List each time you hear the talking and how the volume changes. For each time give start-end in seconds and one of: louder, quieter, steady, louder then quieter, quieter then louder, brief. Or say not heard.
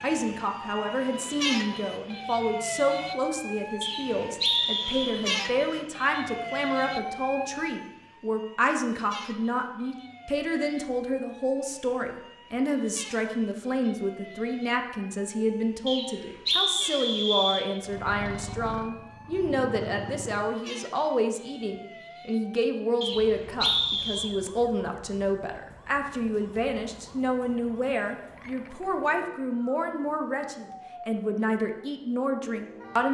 0.0-33.0 steady.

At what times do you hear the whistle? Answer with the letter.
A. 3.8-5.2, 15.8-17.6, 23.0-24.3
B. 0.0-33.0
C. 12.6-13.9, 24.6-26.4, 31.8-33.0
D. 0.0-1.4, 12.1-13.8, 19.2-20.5
A.